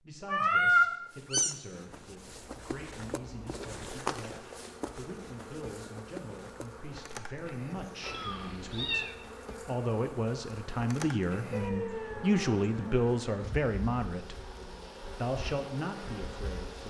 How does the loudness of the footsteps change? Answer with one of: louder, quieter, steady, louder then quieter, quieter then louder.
louder then quieter.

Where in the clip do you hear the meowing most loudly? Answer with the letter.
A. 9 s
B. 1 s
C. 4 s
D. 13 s
B.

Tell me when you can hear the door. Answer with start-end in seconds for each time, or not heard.
not heard.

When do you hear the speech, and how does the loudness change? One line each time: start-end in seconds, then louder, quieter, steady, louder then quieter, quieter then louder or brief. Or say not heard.
0.0-14.4 louder
15.2-16.8 brief.